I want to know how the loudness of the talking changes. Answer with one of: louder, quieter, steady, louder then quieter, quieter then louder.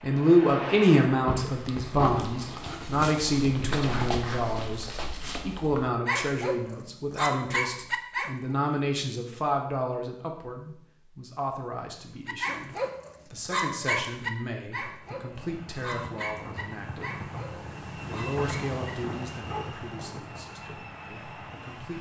quieter.